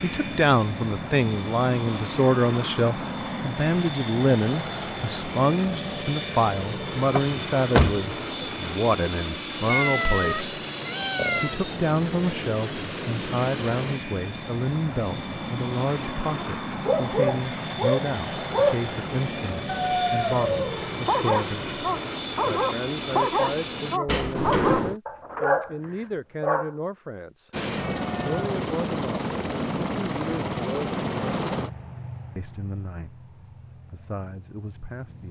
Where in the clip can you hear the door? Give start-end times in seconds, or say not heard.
7.2-8.4, 24.1-25.0.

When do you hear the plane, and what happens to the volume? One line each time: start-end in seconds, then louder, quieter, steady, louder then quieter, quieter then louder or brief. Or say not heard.
0.0-24.0 steady
27.5-35.2 quieter.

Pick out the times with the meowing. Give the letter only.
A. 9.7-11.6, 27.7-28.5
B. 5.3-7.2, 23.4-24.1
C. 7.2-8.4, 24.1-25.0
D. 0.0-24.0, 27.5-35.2
A.